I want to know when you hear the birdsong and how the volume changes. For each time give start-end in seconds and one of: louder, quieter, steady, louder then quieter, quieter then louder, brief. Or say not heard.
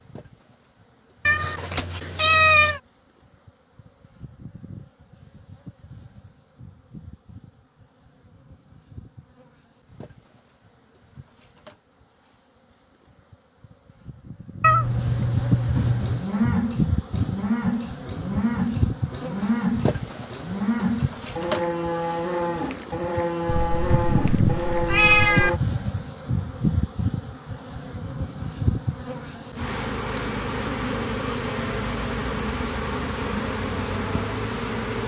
not heard.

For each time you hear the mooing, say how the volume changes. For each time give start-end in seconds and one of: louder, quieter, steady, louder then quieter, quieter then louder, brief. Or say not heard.
15.8-25.6 steady.